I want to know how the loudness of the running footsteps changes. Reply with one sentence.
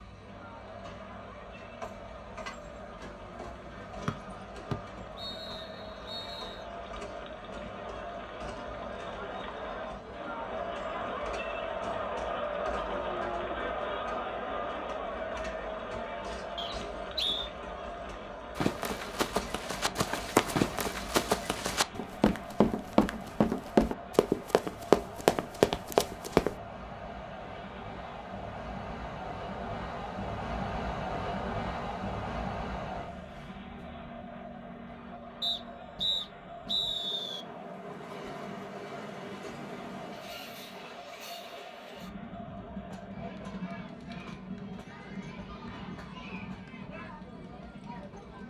The volume of the running footsteps goes up.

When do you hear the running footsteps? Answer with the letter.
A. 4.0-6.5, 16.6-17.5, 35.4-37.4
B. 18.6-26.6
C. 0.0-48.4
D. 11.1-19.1
B.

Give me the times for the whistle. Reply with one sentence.
You can hear the whistle from 4.0 to 6.5 s, from 16.6 to 17.5 s and from 35.4 to 37.4 s.